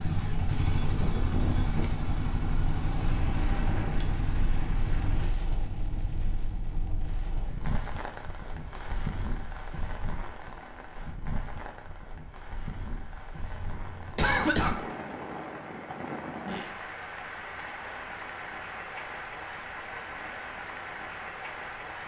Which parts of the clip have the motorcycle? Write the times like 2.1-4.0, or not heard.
0.0-5.3.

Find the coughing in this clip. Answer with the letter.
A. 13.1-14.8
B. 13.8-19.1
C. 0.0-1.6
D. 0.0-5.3
A.